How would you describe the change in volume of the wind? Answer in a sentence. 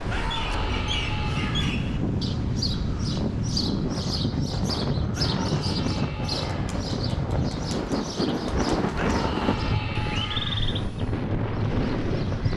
The loudness of the wind stays about the same.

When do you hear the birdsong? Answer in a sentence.
The birdsong can be heard from 0.0 to 12.5 s.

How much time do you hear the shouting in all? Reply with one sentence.
You can hear the shouting for 5 seconds altogether.